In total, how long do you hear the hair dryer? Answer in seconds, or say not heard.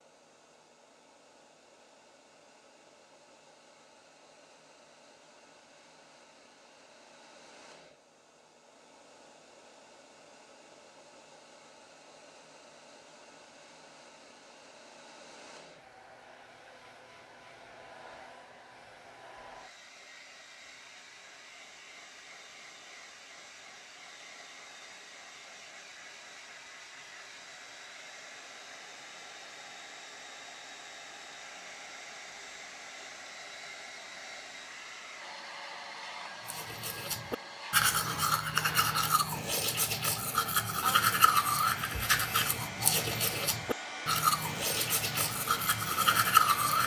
47 s.